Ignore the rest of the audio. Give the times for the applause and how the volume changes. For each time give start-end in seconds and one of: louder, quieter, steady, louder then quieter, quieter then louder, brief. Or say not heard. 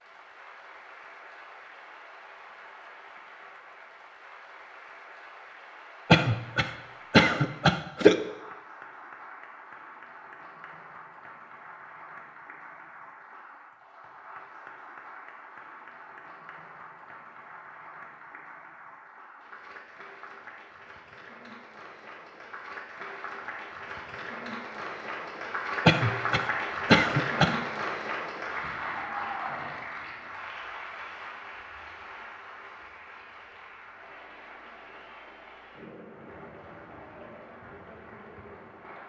0.0-39.0 louder then quieter.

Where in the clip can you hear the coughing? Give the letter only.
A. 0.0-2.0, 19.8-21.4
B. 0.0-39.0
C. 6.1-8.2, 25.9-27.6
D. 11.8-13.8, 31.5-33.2
C.